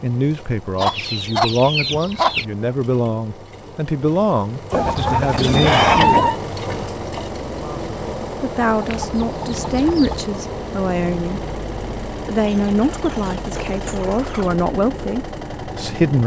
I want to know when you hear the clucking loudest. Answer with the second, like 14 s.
6 s.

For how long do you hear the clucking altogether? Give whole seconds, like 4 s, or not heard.
7 s.